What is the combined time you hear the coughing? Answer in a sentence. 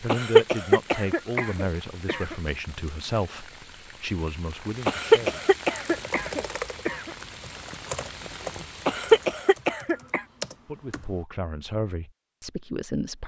You can hear the coughing for 6 seconds altogether.